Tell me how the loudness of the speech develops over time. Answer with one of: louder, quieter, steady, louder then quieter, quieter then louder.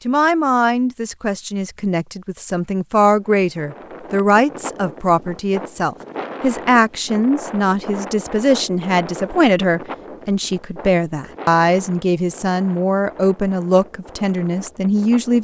steady.